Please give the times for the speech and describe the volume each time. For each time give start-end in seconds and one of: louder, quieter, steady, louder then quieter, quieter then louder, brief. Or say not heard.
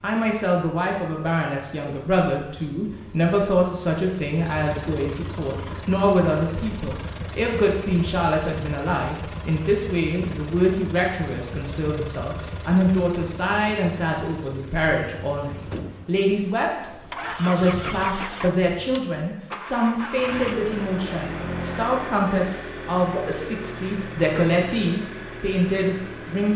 0.0-26.5 steady.